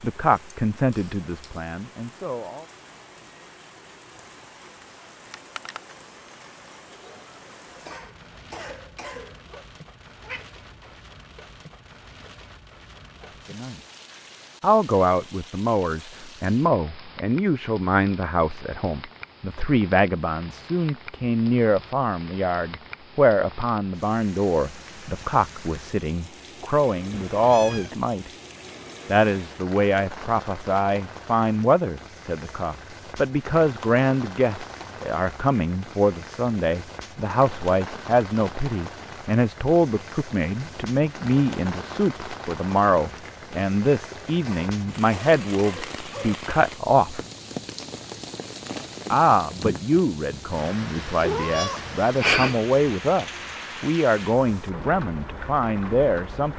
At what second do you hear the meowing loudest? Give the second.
52 s.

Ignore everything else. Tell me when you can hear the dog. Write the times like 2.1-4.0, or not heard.
not heard.